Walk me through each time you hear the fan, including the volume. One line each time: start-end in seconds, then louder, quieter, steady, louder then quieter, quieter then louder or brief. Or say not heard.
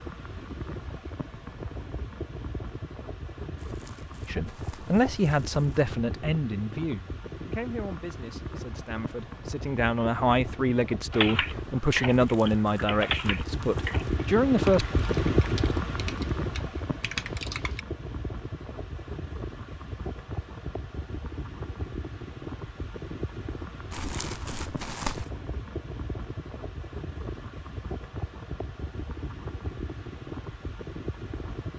0.0-31.7 louder then quieter.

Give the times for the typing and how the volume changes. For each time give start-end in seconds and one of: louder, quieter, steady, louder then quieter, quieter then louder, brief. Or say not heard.
11.1-17.8 quieter then louder.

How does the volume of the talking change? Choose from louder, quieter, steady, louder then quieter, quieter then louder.
quieter then louder.